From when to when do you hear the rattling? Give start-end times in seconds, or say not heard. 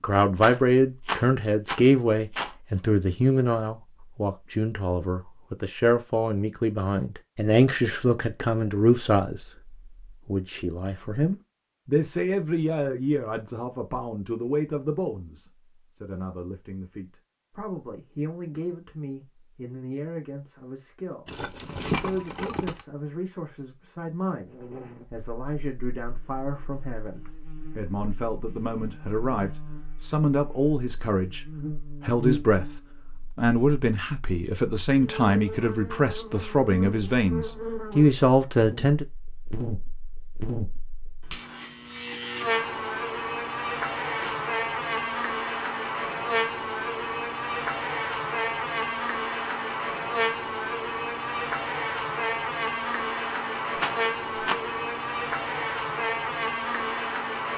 0.4-2.5, 21.2-22.8, 53.8-54.6.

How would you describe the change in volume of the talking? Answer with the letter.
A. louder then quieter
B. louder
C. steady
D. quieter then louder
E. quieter
D.